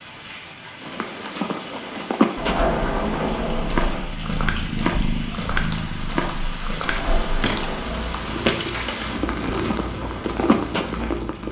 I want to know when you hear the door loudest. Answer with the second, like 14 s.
3 s.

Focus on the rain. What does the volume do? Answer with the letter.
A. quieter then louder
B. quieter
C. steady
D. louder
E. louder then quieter
D.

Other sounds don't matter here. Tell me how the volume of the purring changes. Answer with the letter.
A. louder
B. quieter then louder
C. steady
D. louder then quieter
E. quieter
B.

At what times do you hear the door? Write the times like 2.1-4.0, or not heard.
2.4-4.1, 6.8-8.4.